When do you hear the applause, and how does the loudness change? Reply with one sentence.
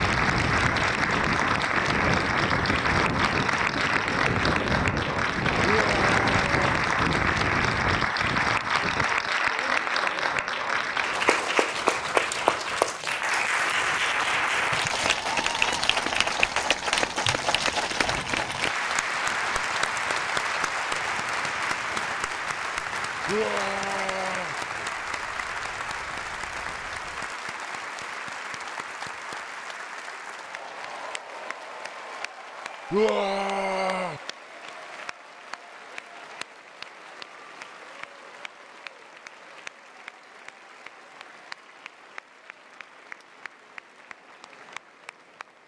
The applause can be heard from 0.0 to 45.6 s, getting quieter.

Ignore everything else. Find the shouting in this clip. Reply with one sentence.
You can hear the shouting from 5.6 to 6.7 s, from 23.2 to 24.6 s and from 32.9 to 34.2 s.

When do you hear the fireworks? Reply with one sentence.
The fireworks can't be heard in this clip.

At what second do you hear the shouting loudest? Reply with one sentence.
The volume of the shouting peaks at 33 seconds.